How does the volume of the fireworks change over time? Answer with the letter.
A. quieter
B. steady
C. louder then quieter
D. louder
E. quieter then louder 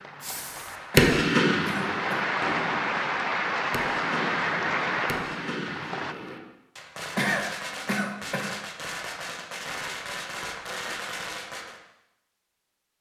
A.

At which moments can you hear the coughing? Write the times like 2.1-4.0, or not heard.
0.9-2.2, 7.2-8.5.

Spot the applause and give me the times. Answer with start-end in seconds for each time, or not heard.
0.0-6.2.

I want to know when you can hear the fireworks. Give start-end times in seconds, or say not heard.
0.2-11.8.